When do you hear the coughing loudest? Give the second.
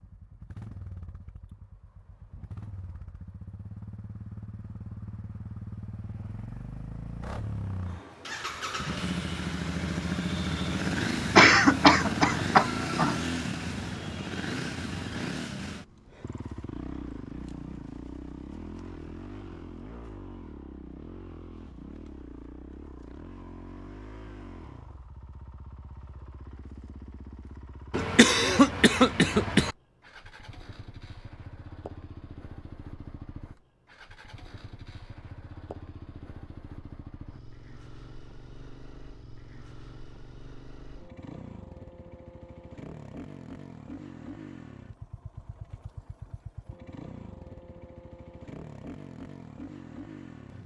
12 s.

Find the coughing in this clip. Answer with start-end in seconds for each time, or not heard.
11.3-13.2, 27.9-29.8.